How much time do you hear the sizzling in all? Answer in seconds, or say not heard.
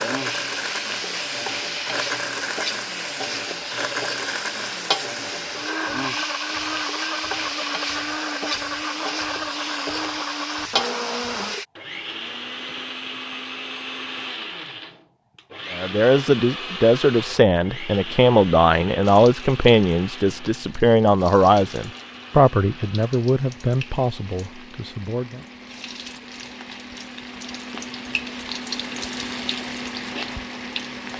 24 s.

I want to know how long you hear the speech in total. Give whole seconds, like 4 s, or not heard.
10 s.